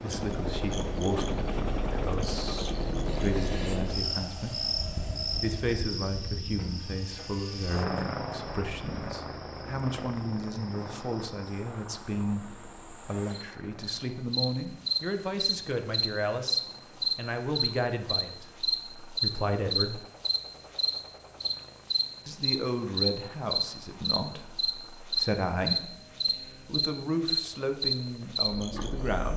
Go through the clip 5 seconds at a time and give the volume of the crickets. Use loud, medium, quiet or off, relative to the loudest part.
medium, quiet, medium, loud, loud, loud.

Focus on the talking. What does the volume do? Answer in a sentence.
The volume of the talking stays about the same.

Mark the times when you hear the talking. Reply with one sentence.
You can hear the talking from 0.0 to 20.1 s and from 22.2 to 29.3 s.